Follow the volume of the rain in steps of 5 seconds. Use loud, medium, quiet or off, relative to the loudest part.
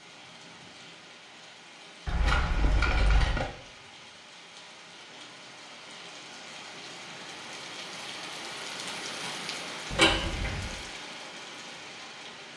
medium, loud, loud.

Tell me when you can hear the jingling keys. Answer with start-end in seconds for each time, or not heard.
2.0-3.5, 9.9-10.7.